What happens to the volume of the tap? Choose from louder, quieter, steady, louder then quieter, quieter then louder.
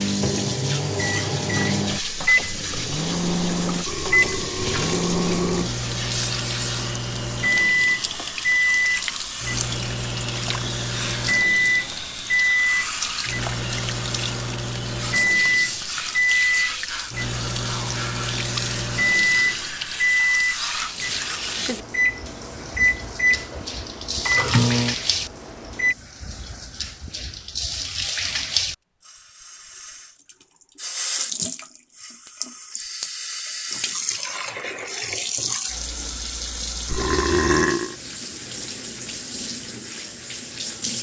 steady.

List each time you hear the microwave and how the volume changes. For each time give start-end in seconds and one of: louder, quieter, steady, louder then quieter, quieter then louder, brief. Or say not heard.
0.0-25.9 steady.